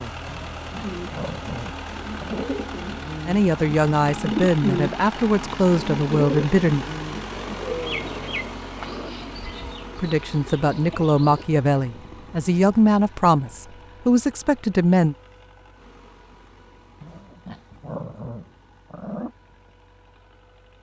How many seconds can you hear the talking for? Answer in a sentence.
The talking can be heard for 9 seconds in total.